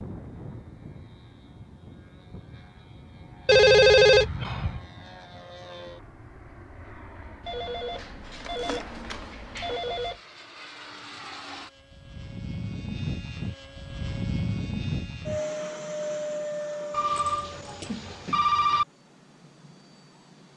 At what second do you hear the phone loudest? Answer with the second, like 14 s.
4 s.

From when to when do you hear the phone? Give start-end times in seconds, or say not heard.
3.5-4.8, 7.5-10.2, 16.9-18.9.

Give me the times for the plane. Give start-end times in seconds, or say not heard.
0.0-20.5.